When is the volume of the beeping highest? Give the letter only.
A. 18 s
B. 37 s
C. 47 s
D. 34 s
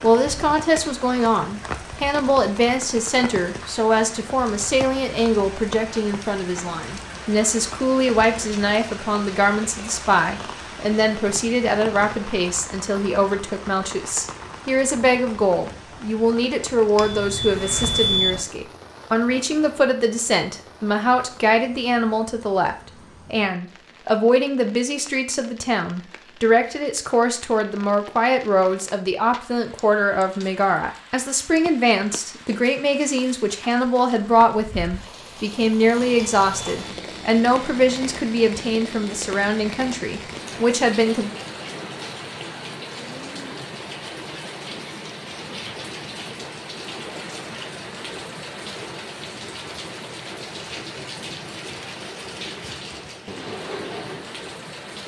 A.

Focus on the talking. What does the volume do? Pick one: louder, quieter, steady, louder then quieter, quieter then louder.
steady.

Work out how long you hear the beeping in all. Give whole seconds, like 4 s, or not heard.
2 s.